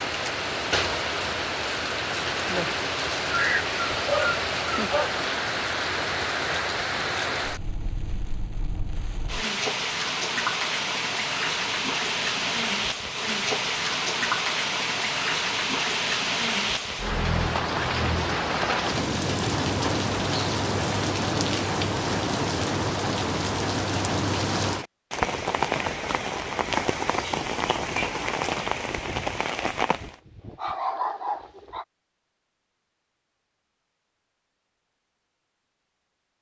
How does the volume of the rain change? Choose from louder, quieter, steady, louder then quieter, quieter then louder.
steady.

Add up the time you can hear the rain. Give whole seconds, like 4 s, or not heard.
30 s.